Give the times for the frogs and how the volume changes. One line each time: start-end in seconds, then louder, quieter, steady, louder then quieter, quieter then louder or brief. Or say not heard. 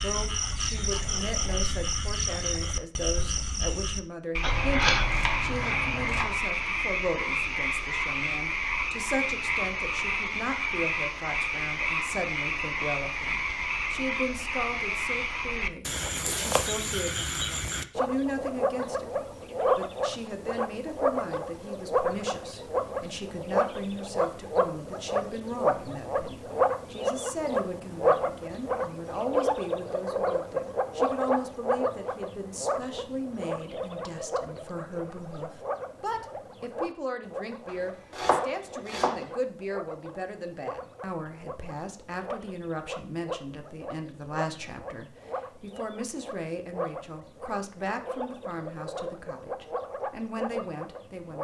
0.0-51.3 quieter.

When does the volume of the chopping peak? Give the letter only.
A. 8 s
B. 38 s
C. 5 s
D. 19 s
B.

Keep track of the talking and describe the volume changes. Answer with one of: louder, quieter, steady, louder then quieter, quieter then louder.
steady.